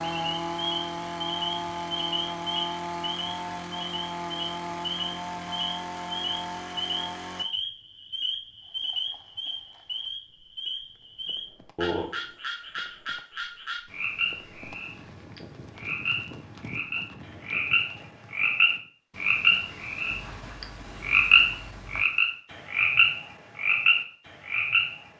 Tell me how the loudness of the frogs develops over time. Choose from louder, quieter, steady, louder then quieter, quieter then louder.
louder.